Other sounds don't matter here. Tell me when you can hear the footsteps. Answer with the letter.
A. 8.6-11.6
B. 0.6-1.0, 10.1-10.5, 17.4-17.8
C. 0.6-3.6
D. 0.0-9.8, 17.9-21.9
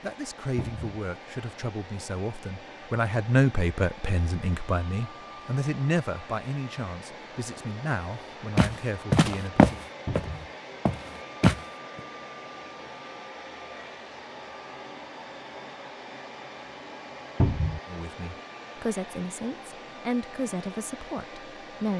A.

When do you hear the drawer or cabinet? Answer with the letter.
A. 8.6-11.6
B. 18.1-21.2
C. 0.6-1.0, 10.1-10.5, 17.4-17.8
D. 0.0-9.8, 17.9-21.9
C.